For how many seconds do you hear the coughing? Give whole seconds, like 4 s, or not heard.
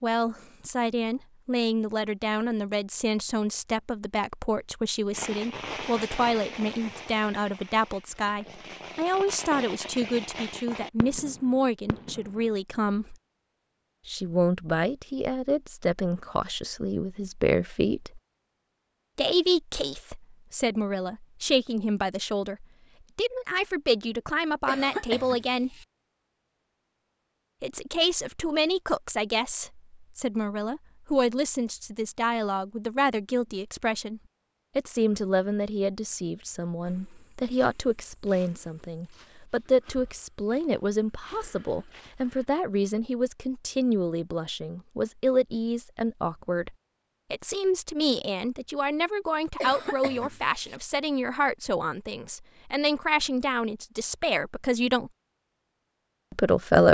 2 s.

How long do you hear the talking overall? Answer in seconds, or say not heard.
52 s.